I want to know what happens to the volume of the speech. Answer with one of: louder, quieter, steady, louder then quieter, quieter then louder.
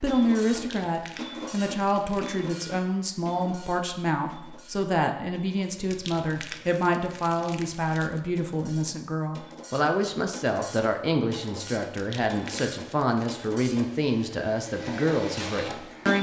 steady.